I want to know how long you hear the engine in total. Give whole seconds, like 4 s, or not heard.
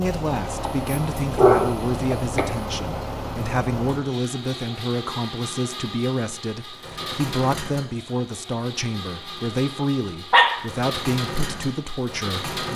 13 s.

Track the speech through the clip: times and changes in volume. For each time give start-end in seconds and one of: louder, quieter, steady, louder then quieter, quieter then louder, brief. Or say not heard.
0.0-12.7 steady.